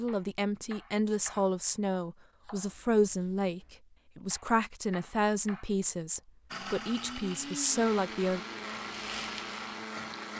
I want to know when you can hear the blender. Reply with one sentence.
You can hear the blender from 6.5 to 10.3 s.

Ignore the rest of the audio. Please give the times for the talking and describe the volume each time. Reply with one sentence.
The talking can be heard from 0.0 to 8.4 s, at a steady volume.